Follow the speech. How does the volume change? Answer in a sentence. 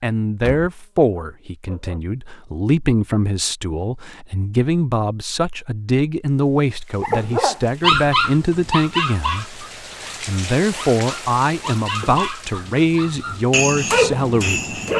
The loudness of the speech stays about the same.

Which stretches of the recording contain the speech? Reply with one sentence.
You can hear the speech from 0.0 to 14.8 s.